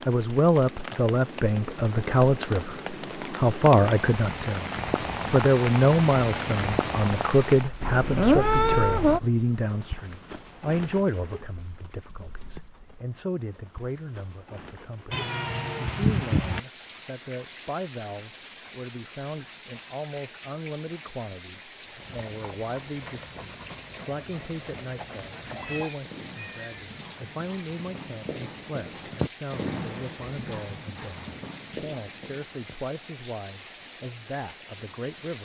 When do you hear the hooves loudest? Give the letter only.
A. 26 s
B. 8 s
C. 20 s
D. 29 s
D.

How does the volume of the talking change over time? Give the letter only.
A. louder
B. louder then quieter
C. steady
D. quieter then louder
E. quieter
E.